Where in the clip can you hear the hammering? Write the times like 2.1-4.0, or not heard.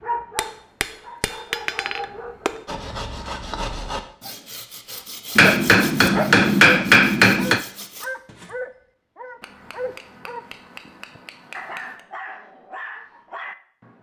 0.3-2.6, 5.3-7.7, 9.4-12.0.